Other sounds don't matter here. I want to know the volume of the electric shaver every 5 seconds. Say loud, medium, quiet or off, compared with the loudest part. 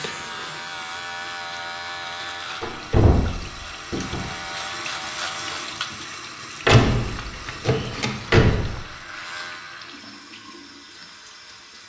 loud, loud, quiet.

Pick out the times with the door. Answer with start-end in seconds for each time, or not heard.
2.6-4.3, 6.7-8.8.